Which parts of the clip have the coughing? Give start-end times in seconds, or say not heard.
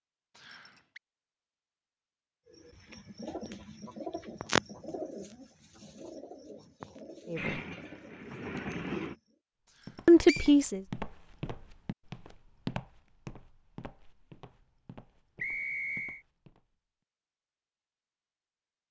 not heard.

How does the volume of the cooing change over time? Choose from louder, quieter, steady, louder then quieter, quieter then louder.
louder then quieter.